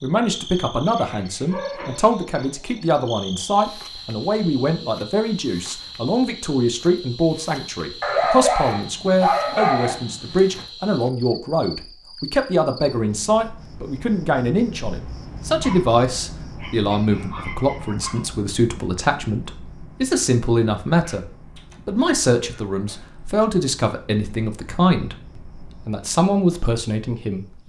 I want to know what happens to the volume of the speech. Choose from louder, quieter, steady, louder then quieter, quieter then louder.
steady.